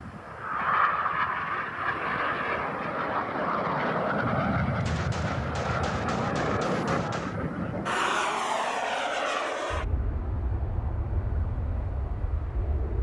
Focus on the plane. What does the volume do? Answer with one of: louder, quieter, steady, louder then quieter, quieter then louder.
quieter.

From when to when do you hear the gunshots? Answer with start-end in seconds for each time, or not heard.
4.8-7.4.